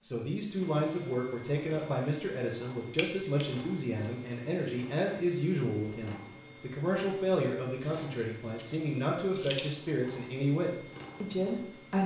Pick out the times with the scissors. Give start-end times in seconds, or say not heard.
3.0-3.5, 7.8-9.7.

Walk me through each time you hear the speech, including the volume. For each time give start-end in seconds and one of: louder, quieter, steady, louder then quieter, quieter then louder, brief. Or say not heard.
0.0-12.0 steady.